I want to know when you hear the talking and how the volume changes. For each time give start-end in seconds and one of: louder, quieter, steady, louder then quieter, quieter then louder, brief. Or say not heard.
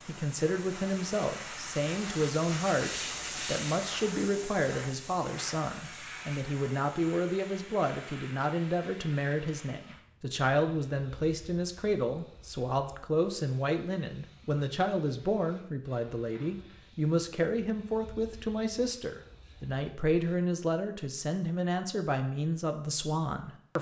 0.1-23.7 steady.